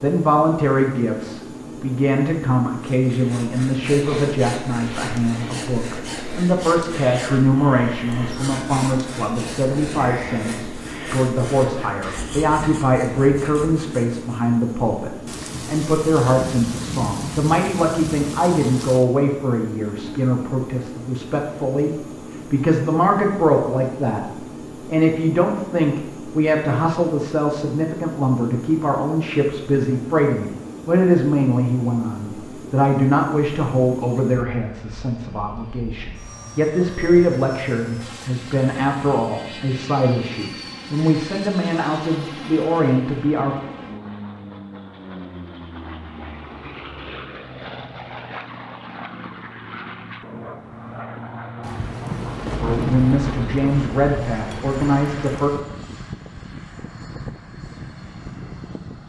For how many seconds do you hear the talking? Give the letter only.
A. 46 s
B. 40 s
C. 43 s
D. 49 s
A.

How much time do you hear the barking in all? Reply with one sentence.
You can't hear the barking here.